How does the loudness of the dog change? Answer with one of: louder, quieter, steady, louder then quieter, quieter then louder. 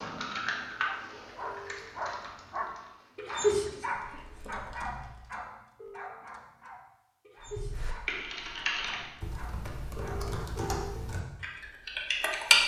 louder then quieter.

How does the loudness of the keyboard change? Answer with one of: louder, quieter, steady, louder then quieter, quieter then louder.
quieter then louder.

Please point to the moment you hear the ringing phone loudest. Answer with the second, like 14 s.
11 s.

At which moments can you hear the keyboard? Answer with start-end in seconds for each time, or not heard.
0.0-5.3, 7.4-12.6.